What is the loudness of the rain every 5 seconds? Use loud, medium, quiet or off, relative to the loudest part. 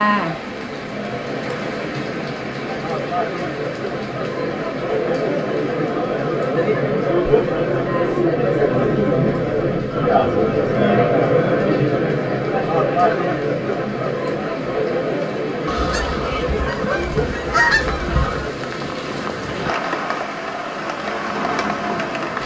loud, medium, medium, loud, loud.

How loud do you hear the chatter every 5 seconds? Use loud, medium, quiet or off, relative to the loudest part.
medium, loud, loud, medium, quiet.